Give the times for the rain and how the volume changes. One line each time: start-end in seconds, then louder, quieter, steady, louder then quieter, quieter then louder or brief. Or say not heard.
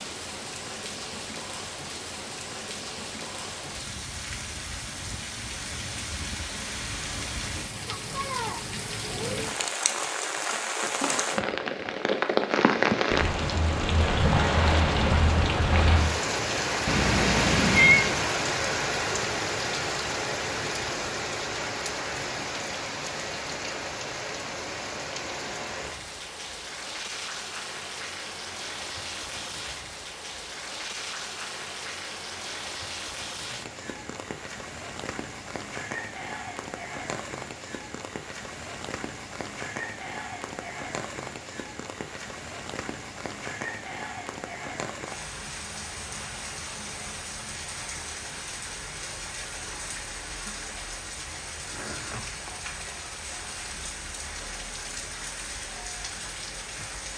0.0-57.1 louder then quieter.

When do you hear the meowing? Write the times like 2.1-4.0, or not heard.
16.9-18.1.